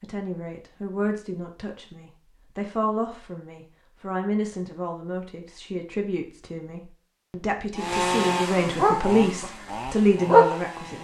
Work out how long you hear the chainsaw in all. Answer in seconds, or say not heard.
3 s.